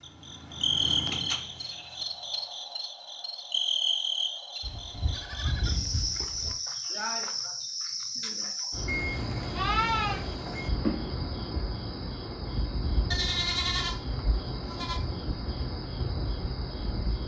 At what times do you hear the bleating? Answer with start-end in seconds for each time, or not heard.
1.1-2.0, 4.6-6.5, 8.8-10.7, 13.1-15.0.